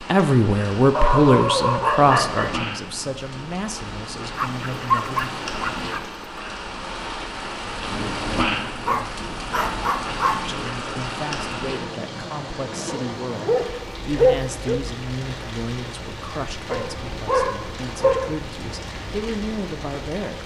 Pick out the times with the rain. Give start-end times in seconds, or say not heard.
0.0-20.4.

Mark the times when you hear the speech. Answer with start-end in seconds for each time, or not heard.
0.0-5.4, 10.4-20.4.